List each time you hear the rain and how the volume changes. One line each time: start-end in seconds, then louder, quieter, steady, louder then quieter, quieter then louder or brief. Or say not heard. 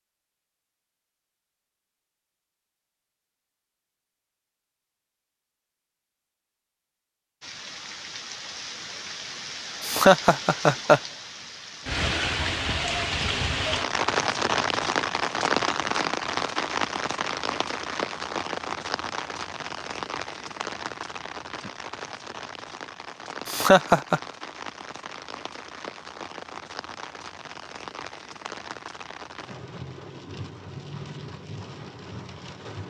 7.4-32.8 louder then quieter.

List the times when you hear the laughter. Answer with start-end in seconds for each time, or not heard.
9.8-11.0, 23.4-24.2.